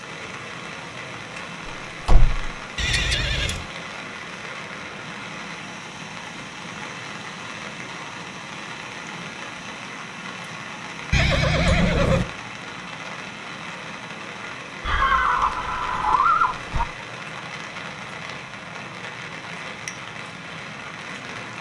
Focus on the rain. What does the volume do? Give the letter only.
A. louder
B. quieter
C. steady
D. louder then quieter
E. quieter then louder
C.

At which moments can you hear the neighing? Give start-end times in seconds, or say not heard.
2.8-3.7, 11.1-12.2, 14.8-16.9.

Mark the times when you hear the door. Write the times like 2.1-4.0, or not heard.
2.0-2.5.